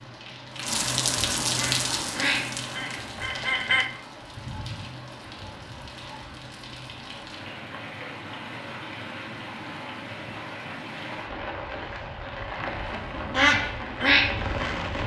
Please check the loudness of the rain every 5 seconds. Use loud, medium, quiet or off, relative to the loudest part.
loud, medium, loud.